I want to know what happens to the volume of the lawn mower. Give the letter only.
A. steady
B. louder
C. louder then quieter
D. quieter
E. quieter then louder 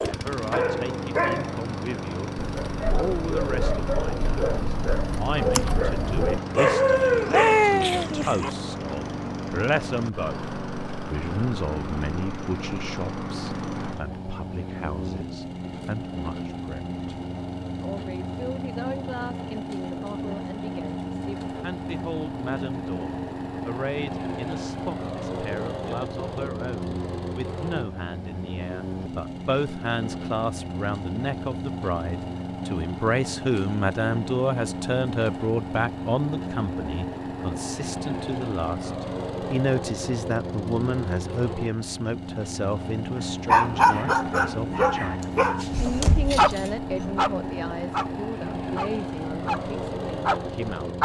A.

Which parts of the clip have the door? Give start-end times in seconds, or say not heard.
45.6-46.7.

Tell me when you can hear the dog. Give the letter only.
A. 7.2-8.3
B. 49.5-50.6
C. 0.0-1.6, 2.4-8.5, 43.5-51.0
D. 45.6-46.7
C.